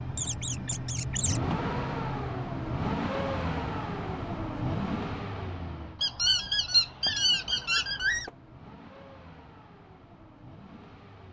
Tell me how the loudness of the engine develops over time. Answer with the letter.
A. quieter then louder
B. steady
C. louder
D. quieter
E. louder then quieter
D.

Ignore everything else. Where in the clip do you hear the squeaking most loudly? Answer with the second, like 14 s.
7 s.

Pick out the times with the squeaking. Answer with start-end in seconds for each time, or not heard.
0.1-1.4, 6.0-8.3.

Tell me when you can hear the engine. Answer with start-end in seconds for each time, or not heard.
0.0-11.2.